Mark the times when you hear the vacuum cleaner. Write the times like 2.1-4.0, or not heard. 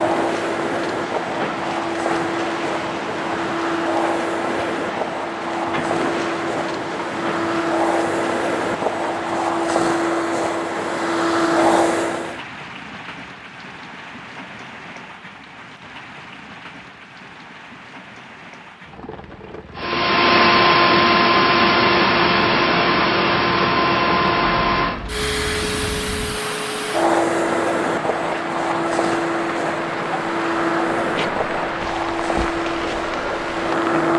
0.0-12.4, 19.8-34.1.